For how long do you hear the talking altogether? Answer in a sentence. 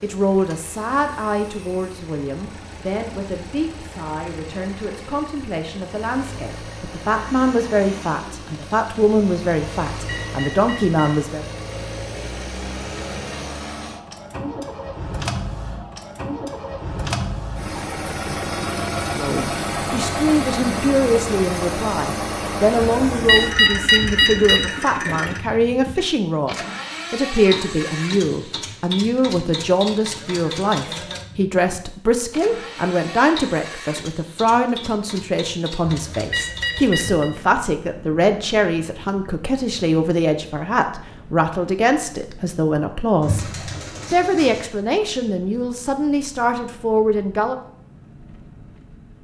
The talking can be heard for 40 seconds in total.